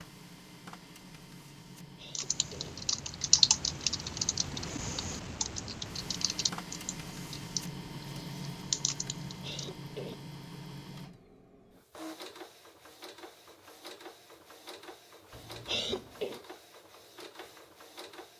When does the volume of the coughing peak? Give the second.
16 s.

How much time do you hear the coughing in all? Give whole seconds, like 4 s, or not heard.
3 s.